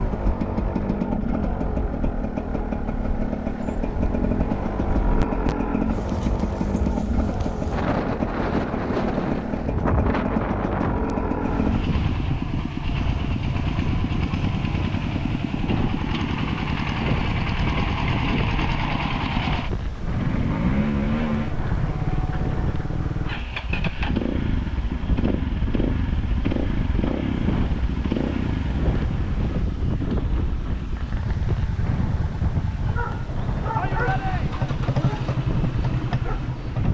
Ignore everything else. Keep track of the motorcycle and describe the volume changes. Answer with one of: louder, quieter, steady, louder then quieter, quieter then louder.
steady.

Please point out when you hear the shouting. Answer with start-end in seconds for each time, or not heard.
33.8-34.7.